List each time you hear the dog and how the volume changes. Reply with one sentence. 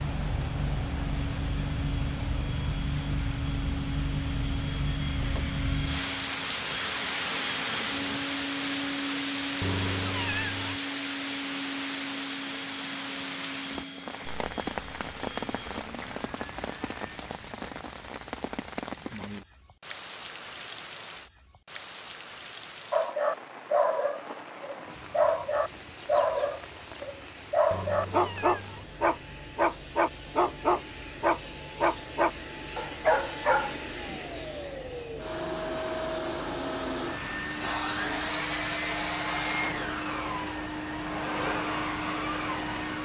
You can hear the dog from 22.9 to 34.2 s, at a steady volume.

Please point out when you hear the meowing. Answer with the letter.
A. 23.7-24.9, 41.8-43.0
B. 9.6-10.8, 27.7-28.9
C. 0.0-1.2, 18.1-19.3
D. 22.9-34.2
B.